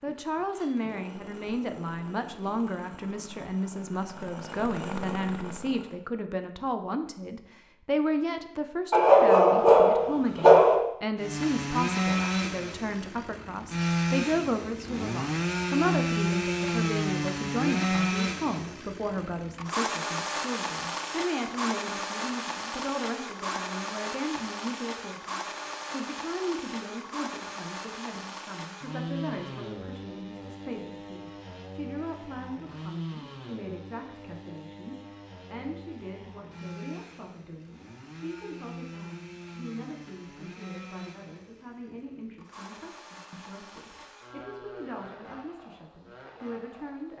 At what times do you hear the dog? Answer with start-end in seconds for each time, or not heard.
8.9-10.8.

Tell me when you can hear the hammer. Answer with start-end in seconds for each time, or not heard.
not heard.